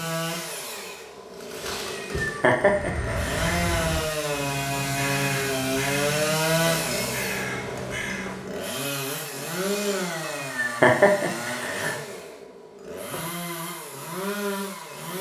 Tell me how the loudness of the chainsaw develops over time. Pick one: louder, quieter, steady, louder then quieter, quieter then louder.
louder then quieter.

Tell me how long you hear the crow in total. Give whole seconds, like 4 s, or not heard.
6 s.